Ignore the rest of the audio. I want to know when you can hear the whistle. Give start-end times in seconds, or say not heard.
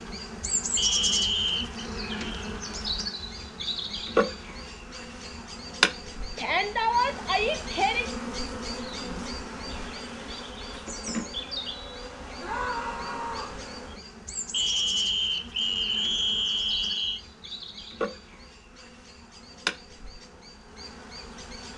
0.8-1.9, 14.5-17.2.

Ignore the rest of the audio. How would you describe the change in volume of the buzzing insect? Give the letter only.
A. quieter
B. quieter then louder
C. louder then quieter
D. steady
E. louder
A.